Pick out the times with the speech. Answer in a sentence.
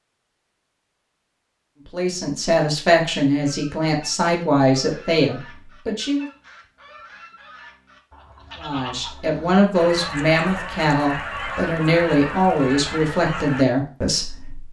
You can hear the speech from 1.9 to 6.2 s and from 8.6 to 14.6 s.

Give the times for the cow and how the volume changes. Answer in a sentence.
You can't hear the cow here.